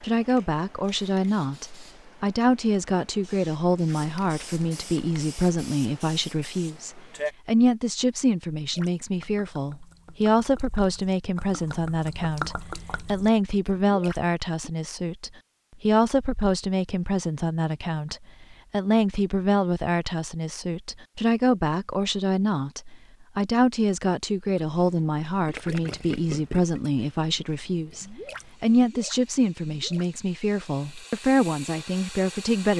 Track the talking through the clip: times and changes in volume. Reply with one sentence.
The talking can be heard from 0.0 to 32.7 s, at a steady volume.